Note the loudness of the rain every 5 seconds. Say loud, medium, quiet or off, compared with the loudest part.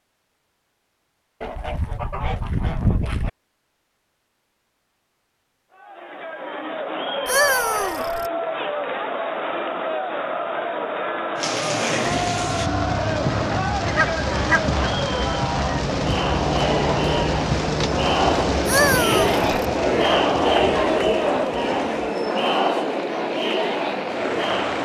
off, off, loud, loud, medium.